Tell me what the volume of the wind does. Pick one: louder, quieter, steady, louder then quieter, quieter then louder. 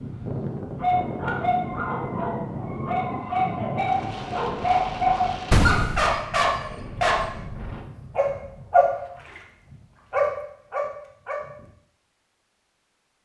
quieter.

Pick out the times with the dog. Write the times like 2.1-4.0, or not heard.
0.8-11.7.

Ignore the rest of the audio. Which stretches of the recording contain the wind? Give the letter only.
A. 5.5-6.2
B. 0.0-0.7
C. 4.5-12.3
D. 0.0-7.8
D.